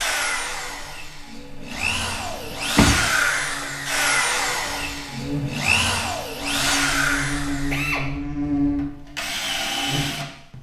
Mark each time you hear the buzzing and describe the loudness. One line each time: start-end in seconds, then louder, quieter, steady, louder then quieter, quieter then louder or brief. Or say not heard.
0.0-10.5 louder.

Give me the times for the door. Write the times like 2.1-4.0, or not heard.
1.7-3.0.